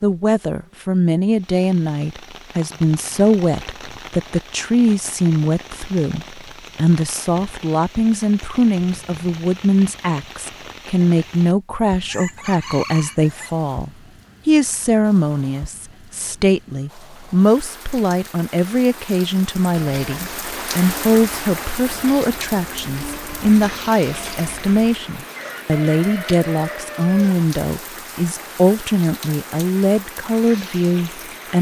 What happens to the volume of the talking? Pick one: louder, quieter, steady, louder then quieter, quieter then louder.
steady.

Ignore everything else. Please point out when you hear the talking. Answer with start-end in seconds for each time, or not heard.
0.0-31.5.